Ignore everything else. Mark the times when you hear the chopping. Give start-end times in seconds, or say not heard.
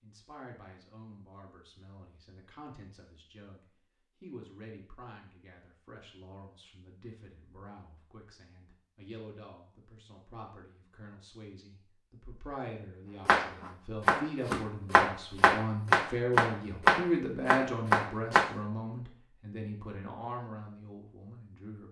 13.2-18.5.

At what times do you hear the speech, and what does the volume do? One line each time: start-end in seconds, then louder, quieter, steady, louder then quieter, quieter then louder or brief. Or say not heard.
0.0-21.8 louder.